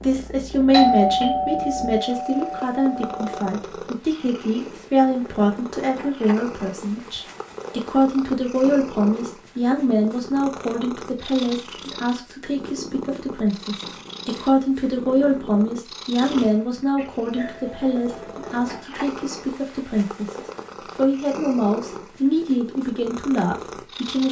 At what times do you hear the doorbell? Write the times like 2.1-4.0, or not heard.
0.7-3.4, 16.9-18.8.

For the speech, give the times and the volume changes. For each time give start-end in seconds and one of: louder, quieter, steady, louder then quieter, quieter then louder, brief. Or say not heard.
0.0-24.2 steady.